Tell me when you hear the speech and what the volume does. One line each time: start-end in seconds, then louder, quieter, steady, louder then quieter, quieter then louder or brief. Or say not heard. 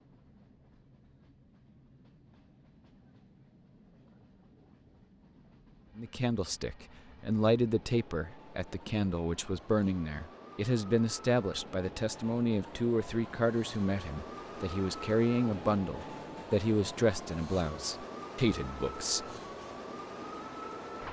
6.0-19.3 steady.